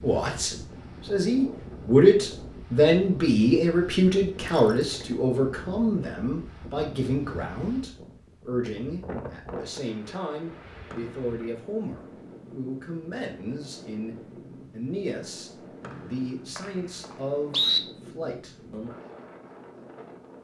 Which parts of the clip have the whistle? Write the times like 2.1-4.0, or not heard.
4.3-5.0, 10.9-11.3, 15.8-17.8.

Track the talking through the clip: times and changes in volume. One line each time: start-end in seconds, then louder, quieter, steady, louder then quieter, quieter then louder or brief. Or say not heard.
0.0-18.9 quieter.